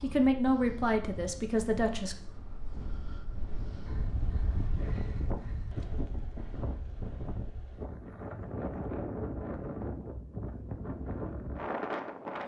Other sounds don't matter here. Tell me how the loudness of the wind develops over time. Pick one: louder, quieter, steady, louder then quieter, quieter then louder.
louder.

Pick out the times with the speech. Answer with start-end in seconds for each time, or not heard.
0.0-2.1.